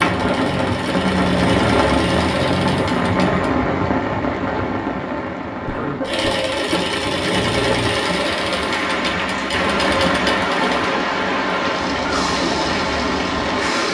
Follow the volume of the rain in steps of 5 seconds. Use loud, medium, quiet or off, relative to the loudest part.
loud, medium, loud.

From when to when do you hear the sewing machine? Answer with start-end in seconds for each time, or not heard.
0.0-3.5, 6.0-13.9.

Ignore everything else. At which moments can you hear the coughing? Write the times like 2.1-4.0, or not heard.
5.7-6.5.